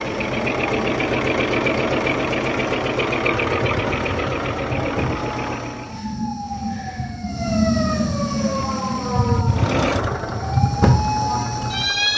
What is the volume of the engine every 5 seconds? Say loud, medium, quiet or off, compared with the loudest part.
loud, medium, medium.